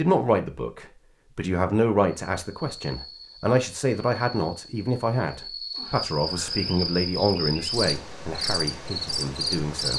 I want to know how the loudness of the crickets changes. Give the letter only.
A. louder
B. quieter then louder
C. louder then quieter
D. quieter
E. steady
A.